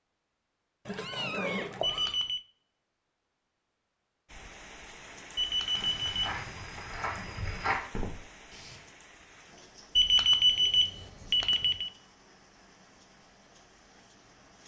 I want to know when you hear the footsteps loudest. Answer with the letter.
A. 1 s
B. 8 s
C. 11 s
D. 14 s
B.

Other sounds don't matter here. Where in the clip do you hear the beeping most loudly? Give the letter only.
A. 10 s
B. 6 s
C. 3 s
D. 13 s
A.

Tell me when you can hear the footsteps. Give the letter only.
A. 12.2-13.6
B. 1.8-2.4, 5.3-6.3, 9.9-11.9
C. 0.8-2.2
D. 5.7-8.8
D.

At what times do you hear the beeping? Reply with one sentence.
You can hear the beeping from 1.8 to 2.4 s, from 5.3 to 6.3 s and from 9.9 to 11.9 s.